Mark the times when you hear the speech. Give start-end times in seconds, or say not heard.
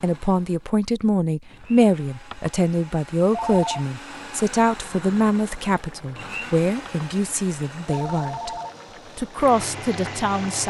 0.0-8.5, 9.2-10.6.